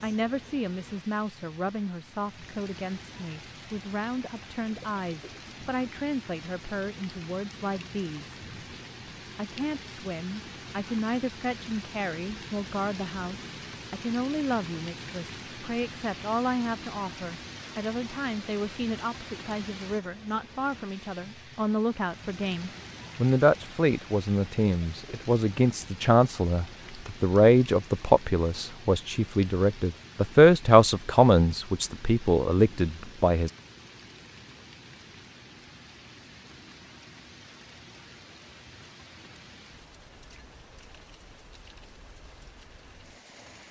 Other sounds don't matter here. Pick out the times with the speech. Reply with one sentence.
The speech can be heard from 0.0 to 8.3 s and from 9.3 to 33.5 s.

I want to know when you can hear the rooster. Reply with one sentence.
The rooster can't be heard in this clip.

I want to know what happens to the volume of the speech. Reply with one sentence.
The loudness of the speech goes up.